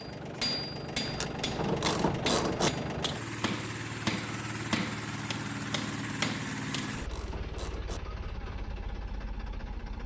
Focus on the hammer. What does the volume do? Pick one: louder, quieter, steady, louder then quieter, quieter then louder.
steady.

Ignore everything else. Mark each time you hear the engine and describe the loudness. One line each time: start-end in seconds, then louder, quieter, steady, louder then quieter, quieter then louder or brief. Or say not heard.
0.0-10.0 quieter.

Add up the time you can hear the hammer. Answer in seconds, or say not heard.
7 s.